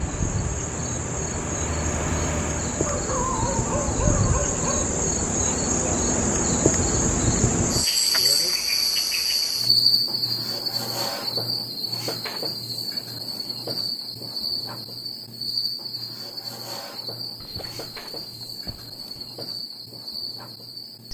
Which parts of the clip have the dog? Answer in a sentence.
The dog can be heard from 2.9 to 4.8 s and from 17.4 to 19.3 s.